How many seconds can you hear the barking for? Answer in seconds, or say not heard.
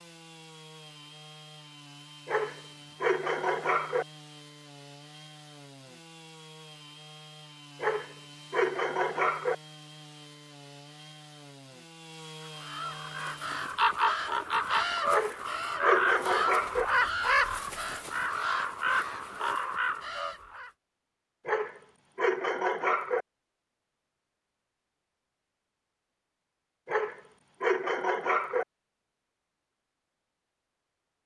9 s.